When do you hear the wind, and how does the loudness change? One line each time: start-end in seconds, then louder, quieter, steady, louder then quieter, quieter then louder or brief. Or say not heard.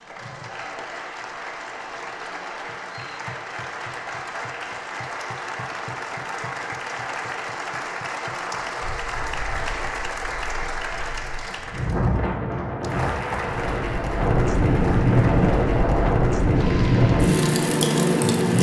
8.8-18.5 louder.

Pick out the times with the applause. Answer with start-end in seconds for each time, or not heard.
0.0-18.5.